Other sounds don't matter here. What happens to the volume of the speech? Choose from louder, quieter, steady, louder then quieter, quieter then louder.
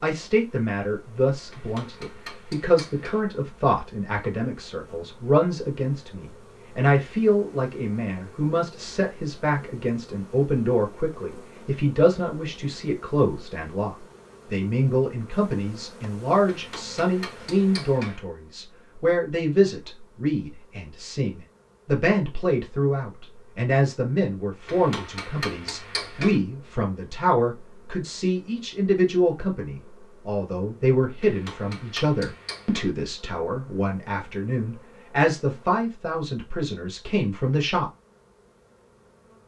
steady.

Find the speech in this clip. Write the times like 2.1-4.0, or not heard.
0.0-37.9.